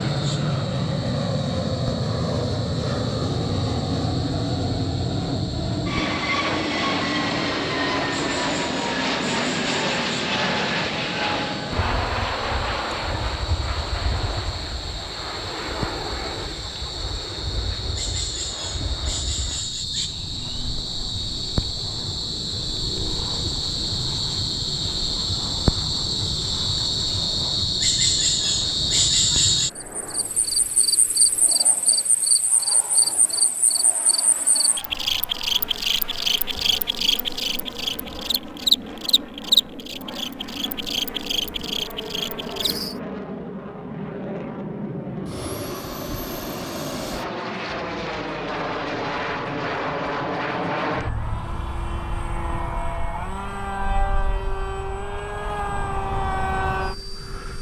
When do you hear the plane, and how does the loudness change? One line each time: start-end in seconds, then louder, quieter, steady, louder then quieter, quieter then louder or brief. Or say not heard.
0.0-57.5 quieter then louder.